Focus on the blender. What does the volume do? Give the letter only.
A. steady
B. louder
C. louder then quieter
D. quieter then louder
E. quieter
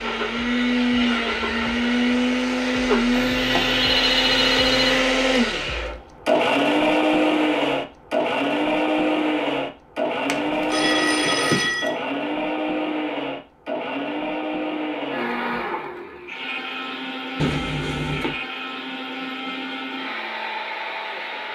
E.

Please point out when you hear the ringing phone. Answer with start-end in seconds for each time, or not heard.
3.1-5.0, 10.2-12.0, 17.4-18.4.